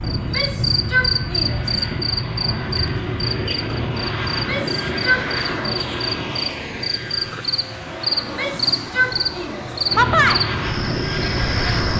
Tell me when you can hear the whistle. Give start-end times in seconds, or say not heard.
not heard.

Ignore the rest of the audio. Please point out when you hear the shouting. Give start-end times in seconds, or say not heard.
0.1-1.8, 4.3-5.8, 8.2-9.8.